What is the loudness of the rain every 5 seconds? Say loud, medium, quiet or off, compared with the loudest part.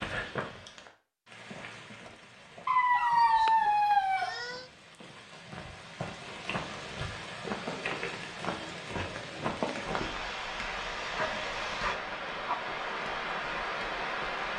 medium, loud, loud.